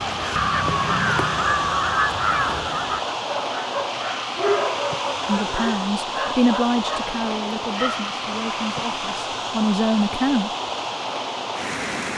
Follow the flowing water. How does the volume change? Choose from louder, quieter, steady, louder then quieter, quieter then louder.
steady.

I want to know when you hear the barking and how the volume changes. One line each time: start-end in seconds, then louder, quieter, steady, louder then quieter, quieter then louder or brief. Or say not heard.
3.1-8.1 louder then quieter.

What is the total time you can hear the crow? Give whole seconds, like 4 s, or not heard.
3 s.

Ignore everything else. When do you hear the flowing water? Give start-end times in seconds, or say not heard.
0.0-12.1.